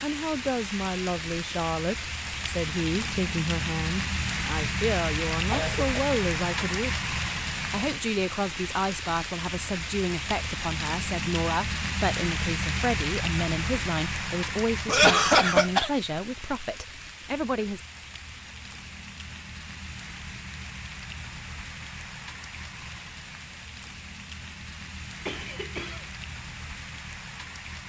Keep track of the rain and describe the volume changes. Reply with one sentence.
The loudness of the rain goes down.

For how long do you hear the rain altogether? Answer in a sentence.
The rain can be heard for 28 seconds in total.